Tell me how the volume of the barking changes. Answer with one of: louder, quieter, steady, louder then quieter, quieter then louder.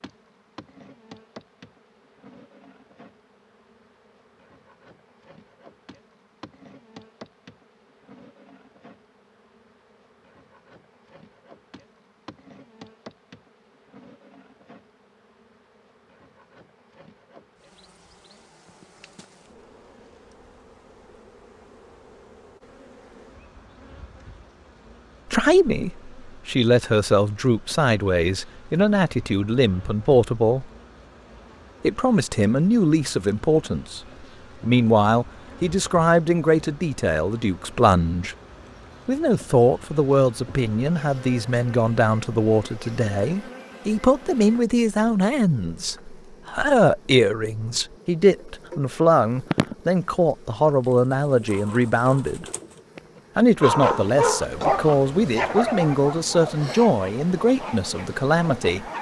louder then quieter.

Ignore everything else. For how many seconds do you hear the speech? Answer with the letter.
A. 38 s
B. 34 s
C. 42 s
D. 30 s
D.